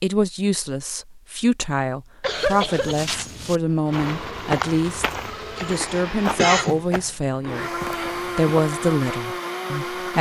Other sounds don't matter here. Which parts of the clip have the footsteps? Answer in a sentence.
The footsteps can be heard from 2.2 to 8.8 s.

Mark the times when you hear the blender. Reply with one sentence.
The blender can be heard from 3.6 to 10.1 s.